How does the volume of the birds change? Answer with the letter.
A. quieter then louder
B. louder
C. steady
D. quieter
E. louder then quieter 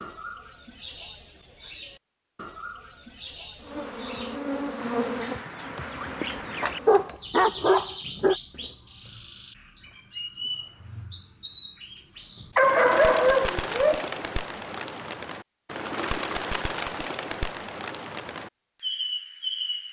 B.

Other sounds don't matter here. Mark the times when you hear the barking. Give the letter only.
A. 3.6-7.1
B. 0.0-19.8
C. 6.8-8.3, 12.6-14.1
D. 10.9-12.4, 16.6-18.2
C.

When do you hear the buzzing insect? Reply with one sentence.
You can hear the buzzing insect from 3.6 to 7.1 s.